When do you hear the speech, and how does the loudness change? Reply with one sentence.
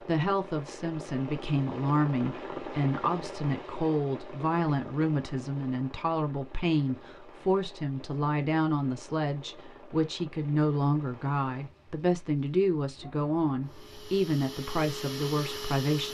You can hear the speech from 0.0 to 16.0 s, at a steady volume.